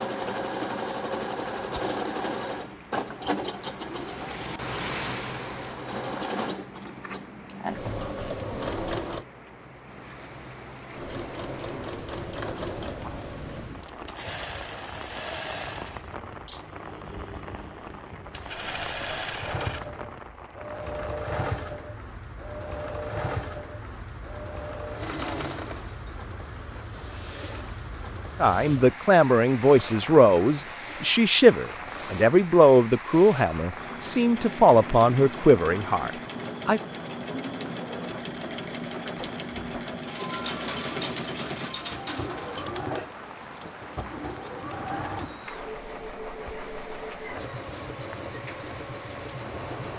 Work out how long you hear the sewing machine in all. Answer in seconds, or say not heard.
48 s.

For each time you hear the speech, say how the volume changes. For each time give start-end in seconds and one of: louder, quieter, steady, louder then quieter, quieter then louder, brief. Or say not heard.
28.4-36.8 steady.